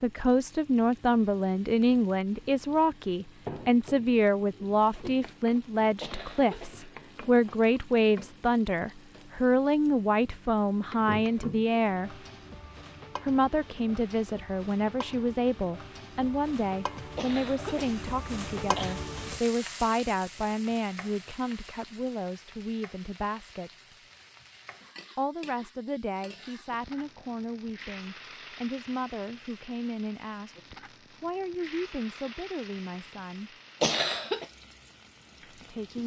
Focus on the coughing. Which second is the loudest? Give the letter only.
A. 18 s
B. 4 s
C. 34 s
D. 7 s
C.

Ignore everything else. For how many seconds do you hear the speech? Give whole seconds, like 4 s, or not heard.
32 s.